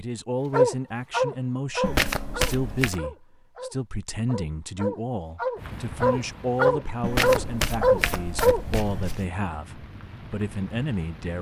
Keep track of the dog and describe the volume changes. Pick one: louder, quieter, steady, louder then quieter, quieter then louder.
quieter then louder.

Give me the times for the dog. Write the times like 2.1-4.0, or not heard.
0.5-8.7.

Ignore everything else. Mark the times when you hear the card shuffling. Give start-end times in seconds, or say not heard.
1.8-3.0, 7.0-9.2.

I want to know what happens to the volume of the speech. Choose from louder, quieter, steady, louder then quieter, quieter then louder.
steady.